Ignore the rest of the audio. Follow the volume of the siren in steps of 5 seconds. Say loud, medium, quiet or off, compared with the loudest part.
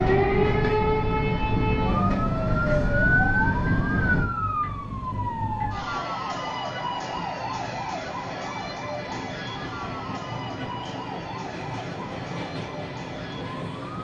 loud, medium, quiet.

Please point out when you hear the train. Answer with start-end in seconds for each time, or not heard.
0.0-13.9.